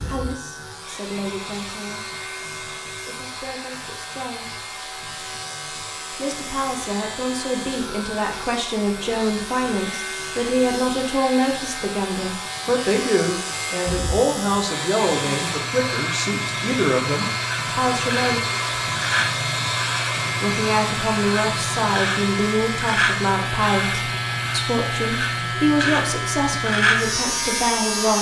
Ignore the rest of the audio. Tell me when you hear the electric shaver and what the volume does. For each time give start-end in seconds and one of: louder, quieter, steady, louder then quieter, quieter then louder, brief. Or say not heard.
0.0-28.1 louder.